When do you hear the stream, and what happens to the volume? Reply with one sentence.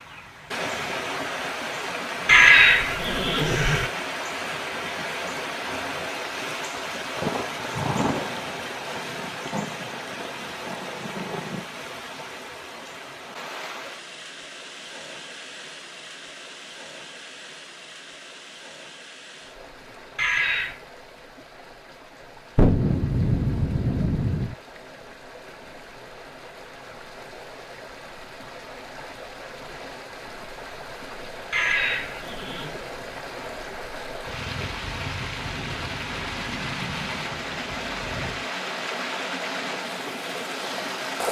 You can hear the stream from 0.0 to 41.2 s, getting quieter then louder.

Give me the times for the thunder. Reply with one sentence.
The thunder can be heard from 7.2 to 11.7 s, from 22.6 to 24.6 s and from 34.2 to 38.5 s.